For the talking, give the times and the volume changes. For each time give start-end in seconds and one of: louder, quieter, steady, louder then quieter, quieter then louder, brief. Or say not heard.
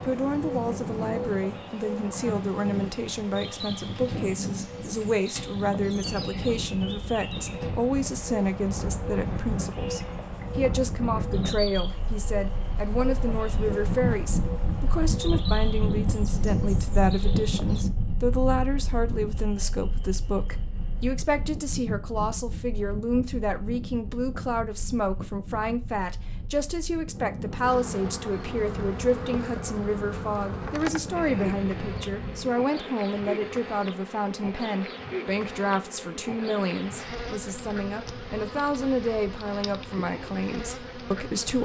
0.0-41.5 steady.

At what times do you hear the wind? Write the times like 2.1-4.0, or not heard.
0.0-32.5.